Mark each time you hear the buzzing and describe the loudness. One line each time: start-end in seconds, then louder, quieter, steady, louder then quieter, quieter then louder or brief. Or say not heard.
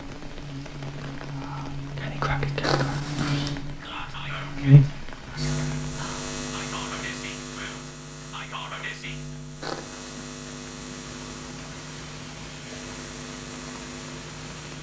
0.0-14.7 louder then quieter.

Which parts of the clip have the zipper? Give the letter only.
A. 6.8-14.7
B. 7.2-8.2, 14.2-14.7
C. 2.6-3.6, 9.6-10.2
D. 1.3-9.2
C.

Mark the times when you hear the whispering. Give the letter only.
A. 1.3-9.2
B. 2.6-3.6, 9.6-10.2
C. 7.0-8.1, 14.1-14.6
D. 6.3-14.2
A.